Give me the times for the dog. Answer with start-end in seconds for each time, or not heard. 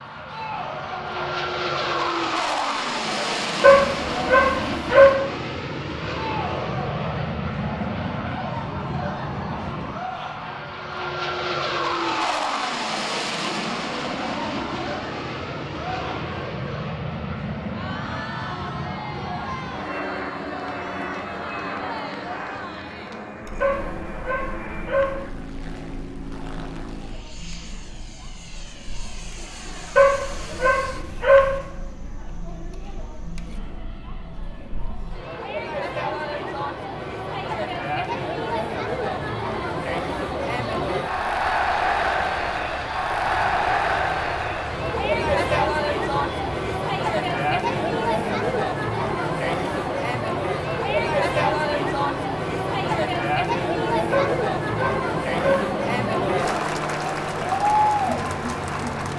3.6-5.2, 23.6-25.2, 29.9-31.6, 54.1-55.6.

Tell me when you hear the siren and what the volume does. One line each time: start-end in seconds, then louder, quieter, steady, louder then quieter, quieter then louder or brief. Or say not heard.
not heard.